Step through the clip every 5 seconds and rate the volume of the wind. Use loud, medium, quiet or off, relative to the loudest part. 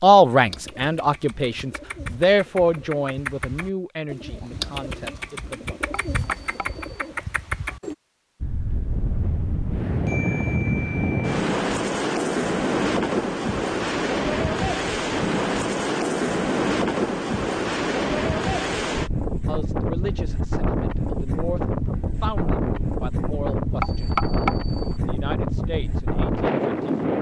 off, medium, loud, loud, loud, loud.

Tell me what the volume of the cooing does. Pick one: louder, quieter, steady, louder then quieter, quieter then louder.
louder.